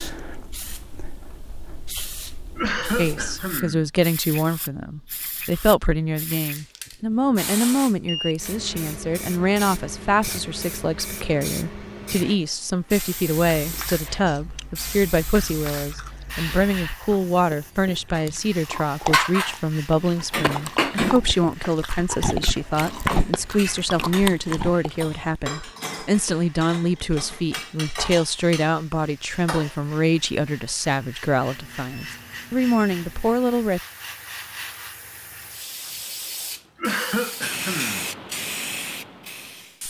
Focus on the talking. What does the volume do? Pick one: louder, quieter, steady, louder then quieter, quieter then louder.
steady.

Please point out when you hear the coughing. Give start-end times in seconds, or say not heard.
2.5-3.9, 36.8-38.0.